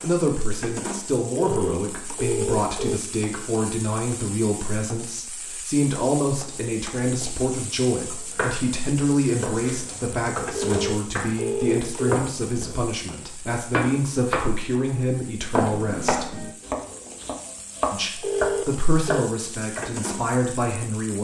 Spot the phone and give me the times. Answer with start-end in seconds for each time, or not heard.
1.3-3.0, 10.5-12.2, 18.2-19.2.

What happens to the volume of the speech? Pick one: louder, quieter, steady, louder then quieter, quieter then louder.
steady.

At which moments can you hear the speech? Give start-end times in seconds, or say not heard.
0.0-16.3, 17.9-21.1.